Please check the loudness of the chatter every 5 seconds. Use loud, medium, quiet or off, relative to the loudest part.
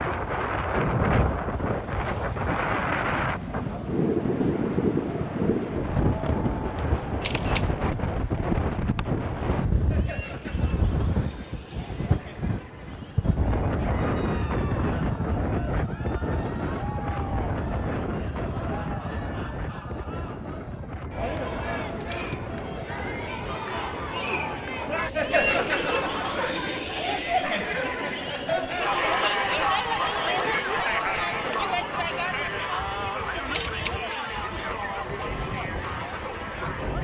quiet, quiet, quiet, quiet, medium, loud, loud, medium.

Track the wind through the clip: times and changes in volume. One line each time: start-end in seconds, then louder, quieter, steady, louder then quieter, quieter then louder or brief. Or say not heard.
0.0-37.0 quieter.